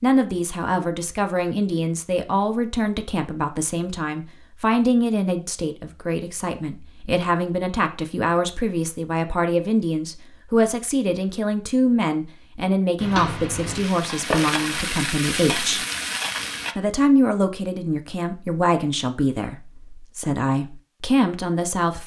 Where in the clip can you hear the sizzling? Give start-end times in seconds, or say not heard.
13.0-16.8.